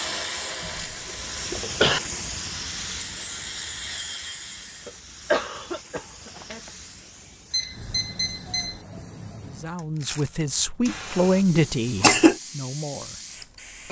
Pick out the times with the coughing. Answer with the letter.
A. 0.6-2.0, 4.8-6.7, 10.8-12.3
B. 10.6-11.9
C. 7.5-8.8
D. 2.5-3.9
A.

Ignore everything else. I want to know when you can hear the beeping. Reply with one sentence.
The beeping can be heard from 7.5 to 8.8 s.